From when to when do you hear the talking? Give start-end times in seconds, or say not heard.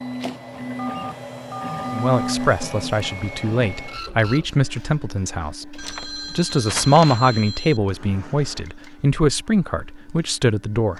1.9-10.9.